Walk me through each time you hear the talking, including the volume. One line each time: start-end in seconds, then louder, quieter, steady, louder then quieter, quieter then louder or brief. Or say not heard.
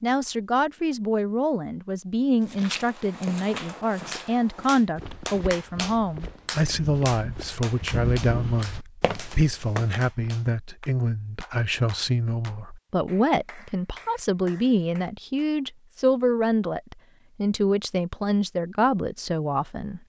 0.0-20.0 steady.